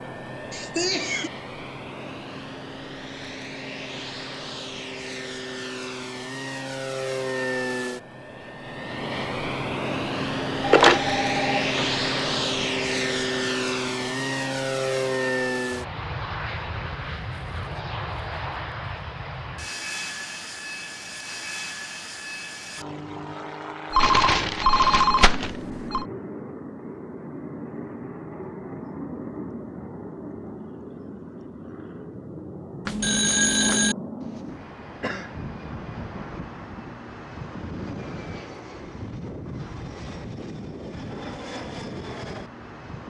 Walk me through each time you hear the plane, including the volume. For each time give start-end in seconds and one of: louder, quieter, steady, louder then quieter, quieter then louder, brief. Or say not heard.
0.0-43.0 louder then quieter.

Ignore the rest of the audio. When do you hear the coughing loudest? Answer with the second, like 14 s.
1 s.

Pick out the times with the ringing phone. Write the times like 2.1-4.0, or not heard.
10.6-11.8, 23.9-26.1, 32.9-34.0.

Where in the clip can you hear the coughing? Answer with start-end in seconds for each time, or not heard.
0.5-1.3, 34.2-35.4.